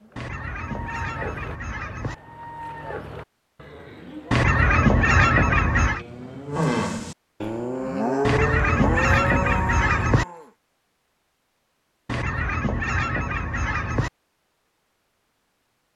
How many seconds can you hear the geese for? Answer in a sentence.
The geese can be heard for 8 seconds in total.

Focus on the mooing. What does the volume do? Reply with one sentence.
The volume of the mooing goes up.